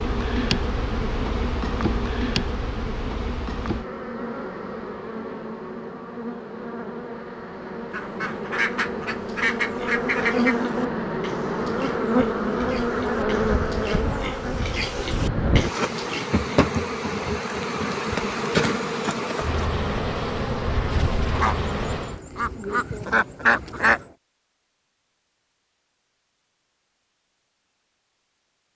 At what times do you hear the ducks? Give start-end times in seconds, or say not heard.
7.9-10.6, 21.4-24.1.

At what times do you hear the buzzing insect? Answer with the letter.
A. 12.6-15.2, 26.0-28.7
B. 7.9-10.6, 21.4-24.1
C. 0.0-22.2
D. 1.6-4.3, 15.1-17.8
C.